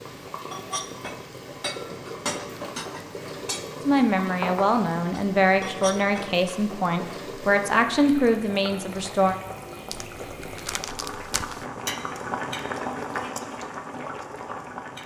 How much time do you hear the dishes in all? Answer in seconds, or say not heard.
6 s.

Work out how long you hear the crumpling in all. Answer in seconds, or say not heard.
2 s.